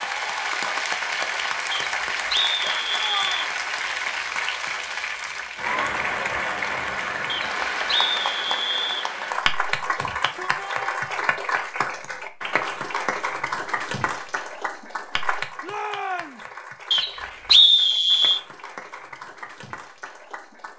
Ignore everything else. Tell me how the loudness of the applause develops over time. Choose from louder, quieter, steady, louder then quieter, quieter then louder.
quieter.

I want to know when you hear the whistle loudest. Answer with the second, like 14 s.
18 s.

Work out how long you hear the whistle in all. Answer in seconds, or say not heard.
5 s.